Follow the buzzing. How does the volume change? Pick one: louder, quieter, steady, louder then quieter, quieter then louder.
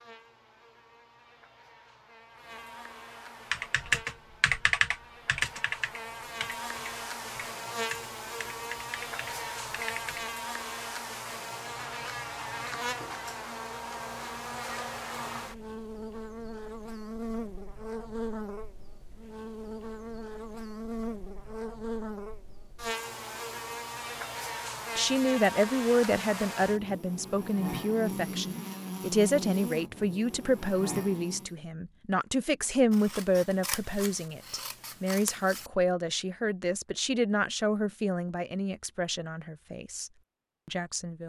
louder.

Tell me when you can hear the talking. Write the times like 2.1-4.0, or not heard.
24.9-41.2.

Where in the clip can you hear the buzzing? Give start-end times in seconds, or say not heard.
0.0-31.6.